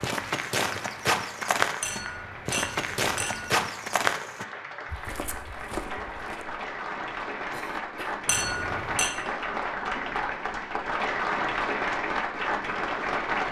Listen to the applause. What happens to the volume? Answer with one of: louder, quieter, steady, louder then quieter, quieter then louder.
louder.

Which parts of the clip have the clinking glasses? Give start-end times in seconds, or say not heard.
1.8-3.6, 8.2-9.1.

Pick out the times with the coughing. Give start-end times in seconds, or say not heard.
7.5-8.2.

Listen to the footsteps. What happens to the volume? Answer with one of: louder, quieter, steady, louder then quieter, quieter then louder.
quieter.